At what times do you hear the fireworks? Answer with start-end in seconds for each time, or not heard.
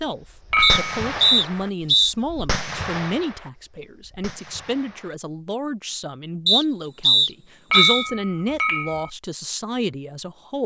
0.2-5.2.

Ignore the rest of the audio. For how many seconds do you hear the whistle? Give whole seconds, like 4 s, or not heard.
3 s.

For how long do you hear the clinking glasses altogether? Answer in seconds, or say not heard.
2 s.